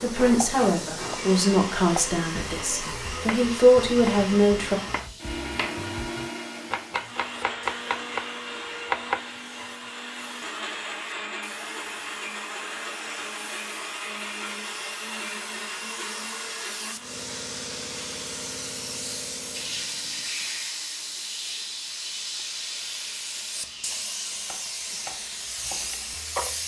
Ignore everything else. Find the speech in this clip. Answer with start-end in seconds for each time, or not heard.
0.0-4.8.